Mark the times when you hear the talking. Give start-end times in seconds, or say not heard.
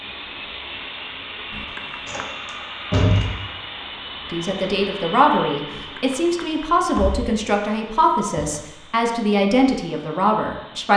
4.3-10.9.